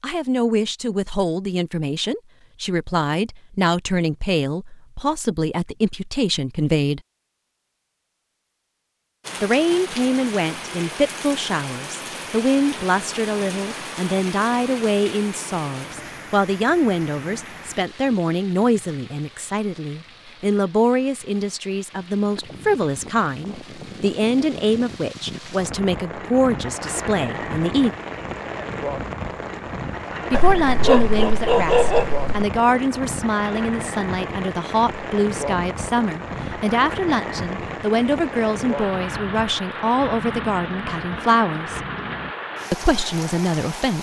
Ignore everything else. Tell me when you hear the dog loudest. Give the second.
32 s.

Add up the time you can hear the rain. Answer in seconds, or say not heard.
35 s.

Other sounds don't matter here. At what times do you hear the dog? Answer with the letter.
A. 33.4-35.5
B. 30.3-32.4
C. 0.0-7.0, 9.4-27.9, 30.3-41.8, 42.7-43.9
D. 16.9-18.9
B.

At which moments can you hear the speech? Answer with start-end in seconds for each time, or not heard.
0.0-7.0, 9.4-27.9, 30.3-41.8, 42.7-43.9.